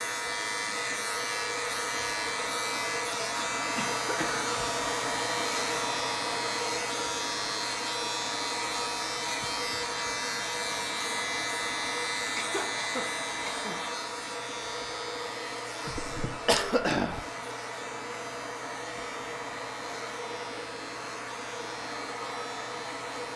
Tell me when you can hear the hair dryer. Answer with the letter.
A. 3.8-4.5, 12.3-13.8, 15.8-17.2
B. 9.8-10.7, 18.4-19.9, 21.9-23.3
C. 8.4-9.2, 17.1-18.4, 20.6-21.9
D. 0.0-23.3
D.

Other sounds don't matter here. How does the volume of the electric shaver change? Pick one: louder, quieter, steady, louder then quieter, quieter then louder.
quieter.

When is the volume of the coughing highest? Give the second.
17 s.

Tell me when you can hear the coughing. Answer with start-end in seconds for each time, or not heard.
3.8-4.5, 12.3-13.8, 15.8-17.2.